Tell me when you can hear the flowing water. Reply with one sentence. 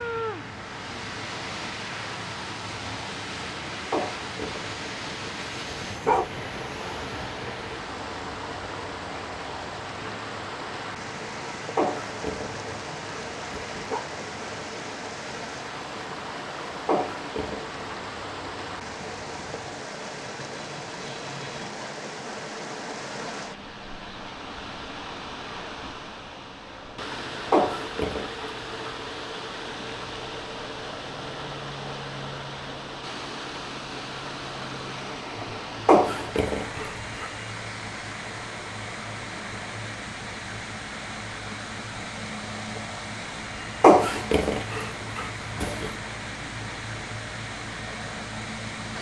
You can hear the flowing water from 0.0 to 48.9 s.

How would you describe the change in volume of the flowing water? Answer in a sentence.
The loudness of the flowing water stays about the same.